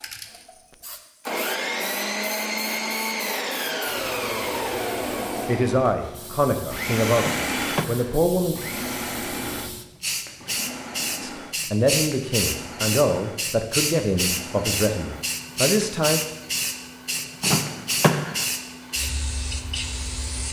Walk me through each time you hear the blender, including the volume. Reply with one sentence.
You can hear the blender from 0.0 to 20.4 s, getting quieter.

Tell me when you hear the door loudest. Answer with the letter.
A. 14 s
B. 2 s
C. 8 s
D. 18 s
D.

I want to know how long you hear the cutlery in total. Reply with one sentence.
The cutlery can't be heard in this clip.